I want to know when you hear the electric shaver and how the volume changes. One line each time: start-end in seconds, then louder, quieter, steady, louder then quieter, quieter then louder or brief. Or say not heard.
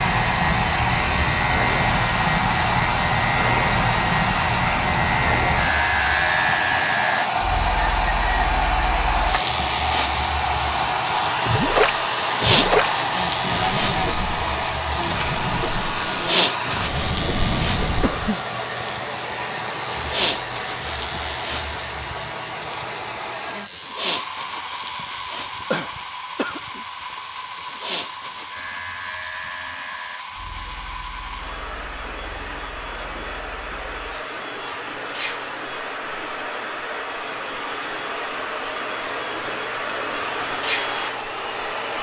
0.0-41.9 quieter.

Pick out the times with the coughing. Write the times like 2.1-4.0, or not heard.
17.1-18.4, 25.7-26.9.